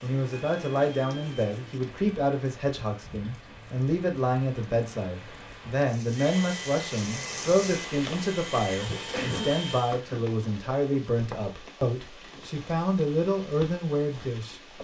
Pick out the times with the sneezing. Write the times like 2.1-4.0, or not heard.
8.8-10.2.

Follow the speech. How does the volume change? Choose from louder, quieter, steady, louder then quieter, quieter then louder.
steady.